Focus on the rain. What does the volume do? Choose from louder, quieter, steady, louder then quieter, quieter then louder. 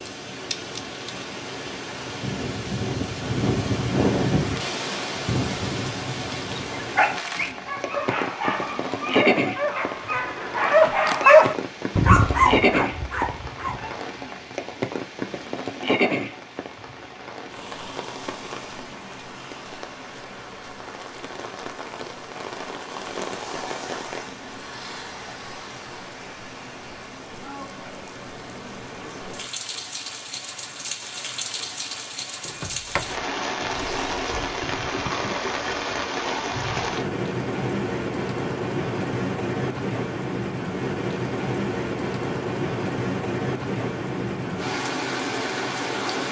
quieter then louder.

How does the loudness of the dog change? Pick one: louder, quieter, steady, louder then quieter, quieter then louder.
louder then quieter.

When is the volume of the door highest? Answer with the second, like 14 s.
33 s.